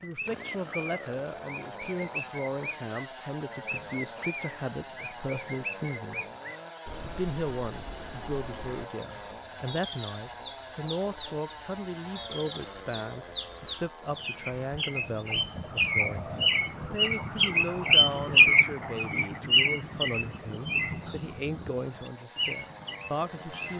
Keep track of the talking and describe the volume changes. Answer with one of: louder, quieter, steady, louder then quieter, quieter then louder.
steady.